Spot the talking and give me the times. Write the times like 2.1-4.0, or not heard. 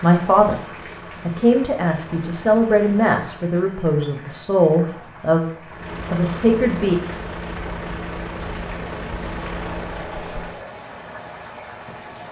0.0-0.6, 1.2-7.0.